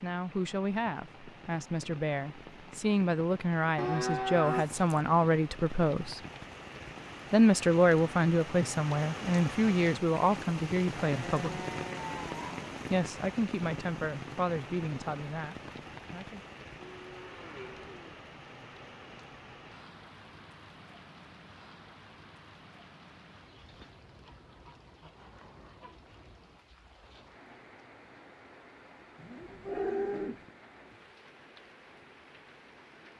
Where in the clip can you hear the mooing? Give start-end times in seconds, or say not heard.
3.8-5.0, 10.9-12.7, 16.9-18.2, 29.1-30.4.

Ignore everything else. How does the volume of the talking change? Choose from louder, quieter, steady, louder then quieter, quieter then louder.
louder then quieter.